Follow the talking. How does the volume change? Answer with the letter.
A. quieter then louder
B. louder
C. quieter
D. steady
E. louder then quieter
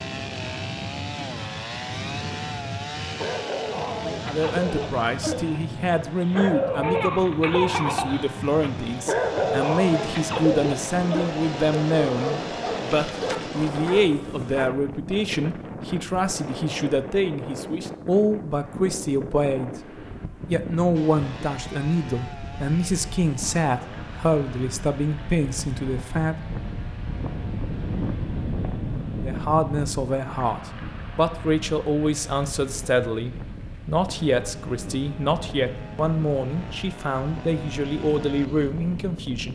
D.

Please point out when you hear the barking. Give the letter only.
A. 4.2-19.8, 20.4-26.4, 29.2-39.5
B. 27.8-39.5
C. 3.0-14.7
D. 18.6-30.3
C.